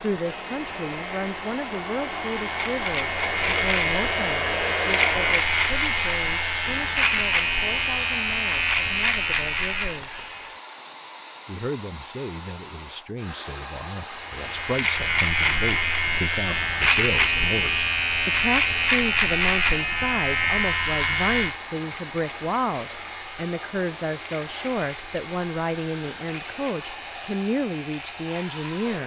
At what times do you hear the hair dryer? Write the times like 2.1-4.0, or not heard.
0.0-29.0.